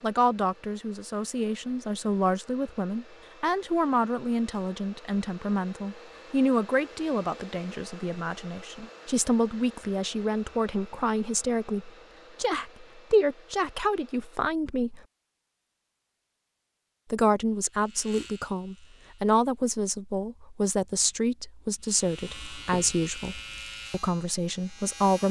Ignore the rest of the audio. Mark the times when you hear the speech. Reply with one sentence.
The speech can be heard from 0.0 to 15.0 s and from 17.1 to 25.2 s.